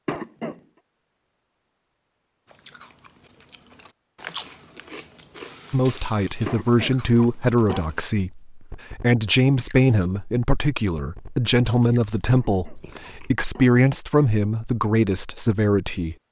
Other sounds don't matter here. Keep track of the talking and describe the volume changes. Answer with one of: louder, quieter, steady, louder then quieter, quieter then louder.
steady.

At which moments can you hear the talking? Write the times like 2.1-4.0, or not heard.
5.7-16.1.